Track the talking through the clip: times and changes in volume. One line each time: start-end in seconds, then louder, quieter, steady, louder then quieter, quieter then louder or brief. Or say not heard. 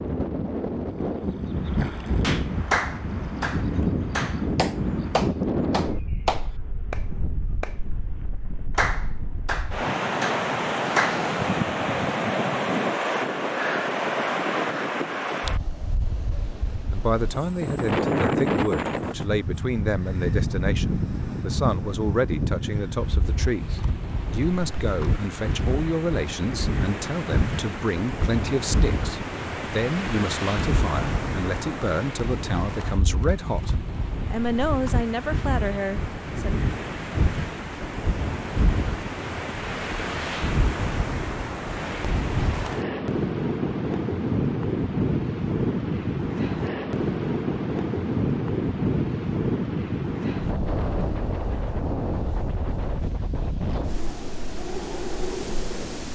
16.9-36.6 steady.